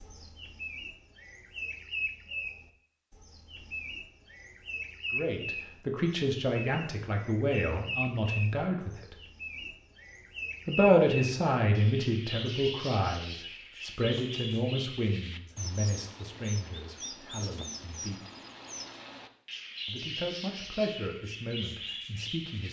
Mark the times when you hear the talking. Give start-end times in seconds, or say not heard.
5.1-9.2, 10.7-18.2, 19.9-22.6.